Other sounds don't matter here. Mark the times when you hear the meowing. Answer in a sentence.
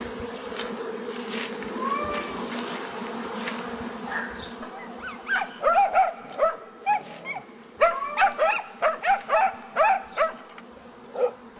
You can hear the meowing from 1.6 to 2.4 s and from 7.8 to 8.4 s.